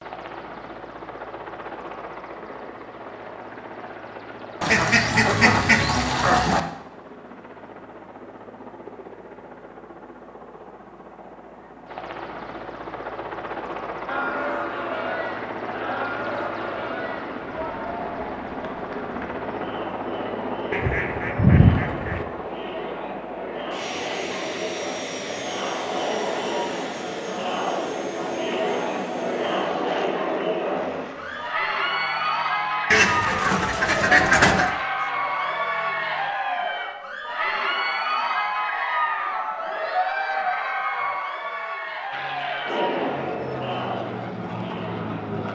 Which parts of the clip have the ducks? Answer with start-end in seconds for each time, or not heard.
4.6-6.6, 20.7-22.2, 32.9-34.7.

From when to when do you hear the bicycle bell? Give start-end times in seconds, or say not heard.
not heard.